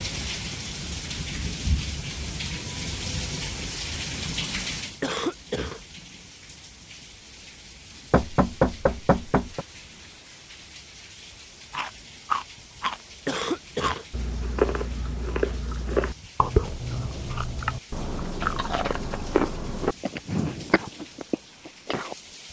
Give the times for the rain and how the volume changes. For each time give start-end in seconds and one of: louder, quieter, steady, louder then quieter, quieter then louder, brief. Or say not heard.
0.0-22.4 quieter.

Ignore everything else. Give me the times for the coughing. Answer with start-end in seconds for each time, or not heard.
5.0-5.8, 13.2-14.1.